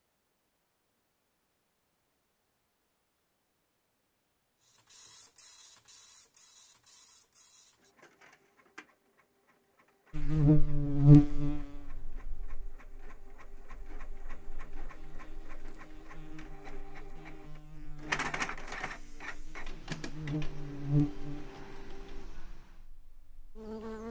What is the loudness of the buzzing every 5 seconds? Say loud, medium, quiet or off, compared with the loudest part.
off, off, loud, quiet, medium.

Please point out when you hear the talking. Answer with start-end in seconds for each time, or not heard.
not heard.